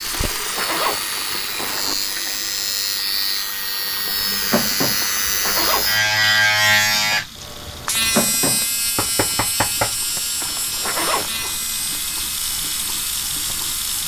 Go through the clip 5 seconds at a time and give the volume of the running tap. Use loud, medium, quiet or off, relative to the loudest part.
loud, medium, loud.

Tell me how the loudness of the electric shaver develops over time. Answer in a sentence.
The volume of the electric shaver goes up, then down.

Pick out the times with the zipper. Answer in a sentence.
The zipper can be heard from 0.1 to 1.9 s, from 5.0 to 6.1 s and from 10.4 to 11.6 s.